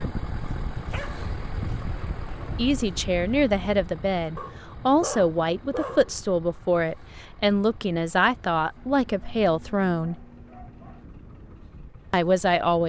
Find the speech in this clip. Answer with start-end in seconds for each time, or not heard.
2.5-10.2, 12.1-12.8.